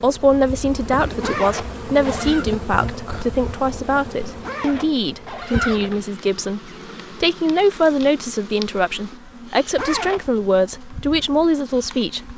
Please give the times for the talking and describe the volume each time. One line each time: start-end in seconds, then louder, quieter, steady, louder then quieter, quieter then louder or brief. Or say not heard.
0.0-12.3 steady.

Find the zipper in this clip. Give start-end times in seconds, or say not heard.
1.2-2.5, 4.4-6.1, 9.8-10.5.